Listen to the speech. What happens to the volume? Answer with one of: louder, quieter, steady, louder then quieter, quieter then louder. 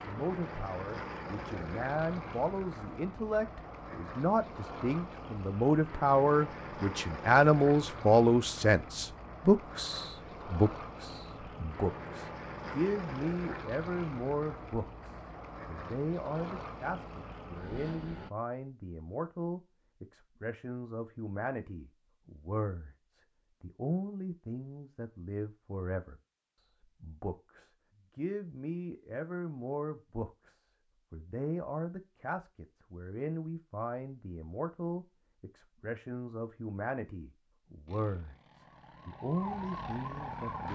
quieter.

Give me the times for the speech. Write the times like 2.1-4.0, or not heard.
0.0-40.7.